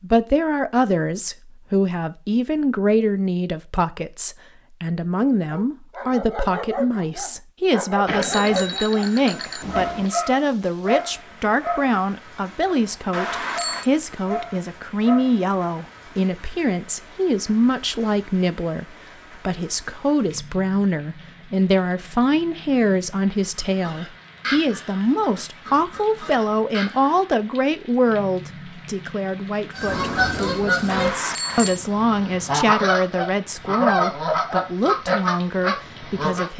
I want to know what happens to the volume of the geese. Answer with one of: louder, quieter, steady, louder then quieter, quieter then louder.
louder.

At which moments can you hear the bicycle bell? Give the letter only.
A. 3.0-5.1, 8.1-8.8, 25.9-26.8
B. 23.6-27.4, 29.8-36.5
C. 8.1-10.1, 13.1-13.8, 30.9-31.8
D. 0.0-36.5
C.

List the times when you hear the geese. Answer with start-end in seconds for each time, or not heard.
23.6-27.4, 29.8-36.5.